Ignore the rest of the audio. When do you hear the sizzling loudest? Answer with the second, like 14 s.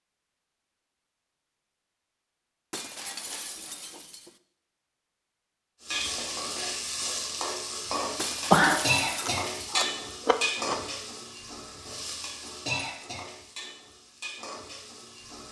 9 s.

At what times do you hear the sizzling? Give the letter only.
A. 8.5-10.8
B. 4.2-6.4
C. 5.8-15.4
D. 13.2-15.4
C.